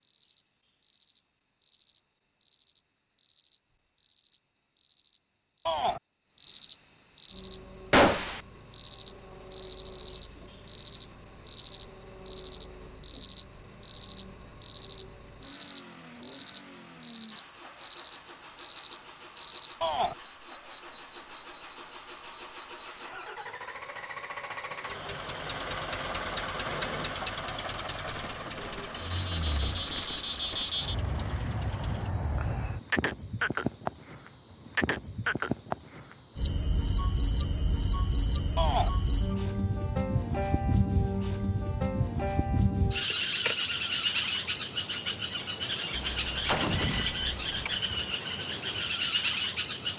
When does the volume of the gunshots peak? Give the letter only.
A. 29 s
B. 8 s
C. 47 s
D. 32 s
B.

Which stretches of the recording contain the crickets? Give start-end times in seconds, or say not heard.
0.0-49.9.